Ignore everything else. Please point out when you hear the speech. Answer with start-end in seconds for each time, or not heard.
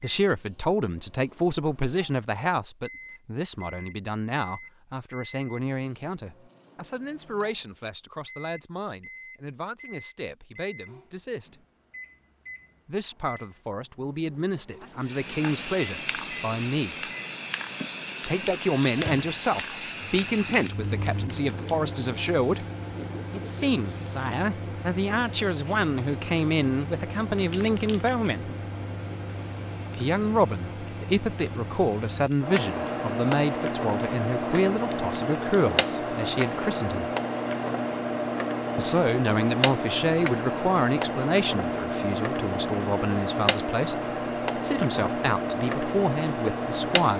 0.0-11.6, 12.8-16.9, 18.2-22.6, 23.3-28.6, 29.9-37.1, 38.8-47.1.